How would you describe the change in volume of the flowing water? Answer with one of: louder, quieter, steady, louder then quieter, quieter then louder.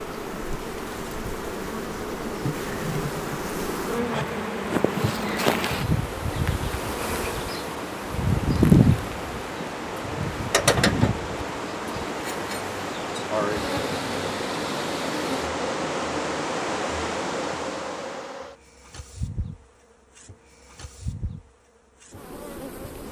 louder.